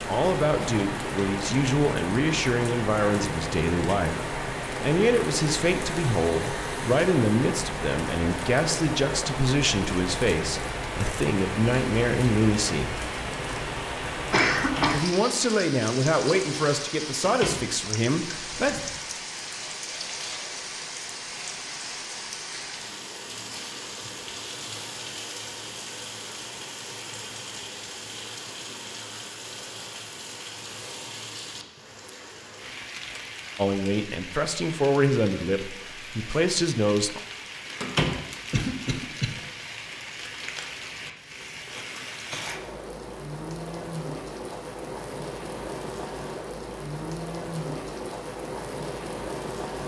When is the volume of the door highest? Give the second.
38 s.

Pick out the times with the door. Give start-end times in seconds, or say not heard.
14.6-15.0, 17.2-17.6, 37.8-38.2.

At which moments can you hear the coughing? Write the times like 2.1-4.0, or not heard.
14.3-15.1, 38.5-39.4.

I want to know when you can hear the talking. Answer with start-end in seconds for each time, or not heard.
0.0-13.0, 14.9-18.8, 33.5-37.2.